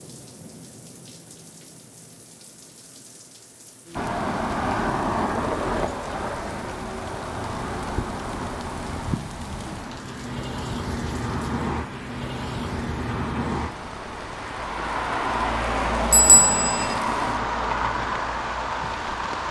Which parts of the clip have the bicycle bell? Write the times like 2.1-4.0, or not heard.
16.1-16.9.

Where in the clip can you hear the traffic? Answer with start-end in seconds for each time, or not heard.
4.0-19.4.